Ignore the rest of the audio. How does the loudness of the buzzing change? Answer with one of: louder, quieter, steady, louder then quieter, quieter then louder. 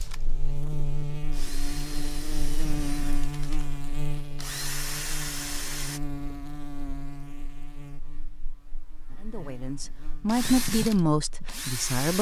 quieter.